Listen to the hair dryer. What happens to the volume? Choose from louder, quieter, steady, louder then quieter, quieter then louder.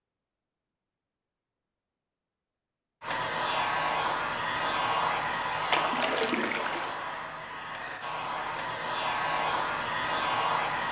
quieter then louder.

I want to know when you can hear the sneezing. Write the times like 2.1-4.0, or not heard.
not heard.